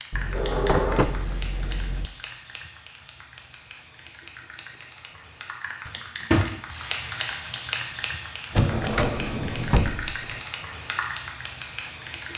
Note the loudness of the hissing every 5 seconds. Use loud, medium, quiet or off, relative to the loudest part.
medium, loud, loud.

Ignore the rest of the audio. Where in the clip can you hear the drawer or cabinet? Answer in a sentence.
You can hear the drawer or cabinet from 0.1 to 2.1 s, from 5.8 to 6.6 s and from 8.5 to 10.4 s.